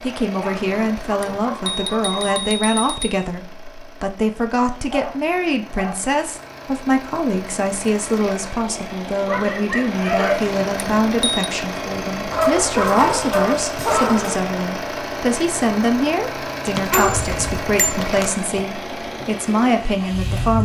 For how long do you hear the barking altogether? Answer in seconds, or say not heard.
8 s.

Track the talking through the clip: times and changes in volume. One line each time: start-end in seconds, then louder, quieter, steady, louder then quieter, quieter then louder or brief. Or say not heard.
0.0-20.6 steady.